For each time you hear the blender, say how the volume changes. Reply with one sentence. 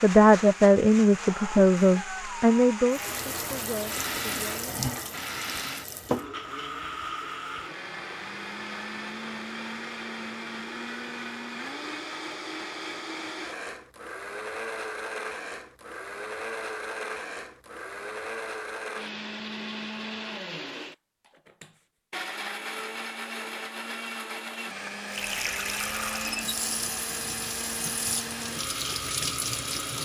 The blender can be heard from 0.0 to 30.0 s, at a steady volume.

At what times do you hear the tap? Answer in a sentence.
The tap can be heard from 2.9 to 6.2 s and from 25.1 to 30.0 s.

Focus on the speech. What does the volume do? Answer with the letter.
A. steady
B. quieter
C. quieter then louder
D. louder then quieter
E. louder
B.